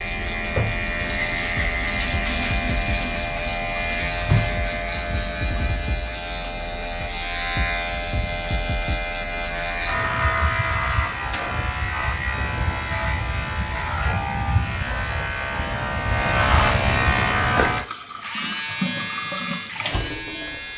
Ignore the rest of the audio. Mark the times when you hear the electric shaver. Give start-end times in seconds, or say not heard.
0.0-20.7.